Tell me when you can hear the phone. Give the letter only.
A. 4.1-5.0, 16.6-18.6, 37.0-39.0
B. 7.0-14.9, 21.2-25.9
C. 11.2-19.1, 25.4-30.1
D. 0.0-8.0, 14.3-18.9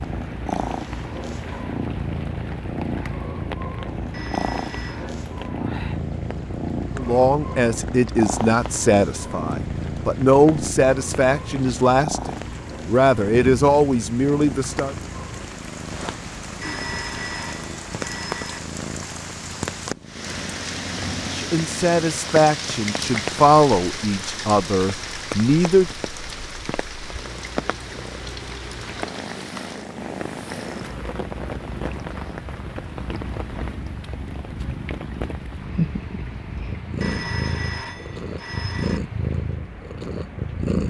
A.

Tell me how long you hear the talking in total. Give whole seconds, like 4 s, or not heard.
13 s.